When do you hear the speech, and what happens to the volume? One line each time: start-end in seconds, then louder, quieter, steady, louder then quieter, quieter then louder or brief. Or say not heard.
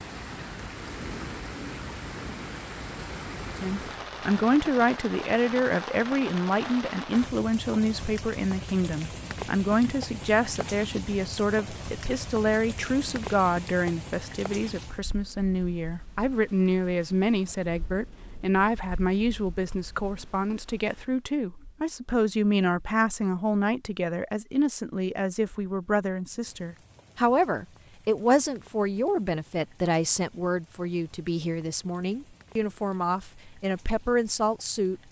3.5-35.0 steady.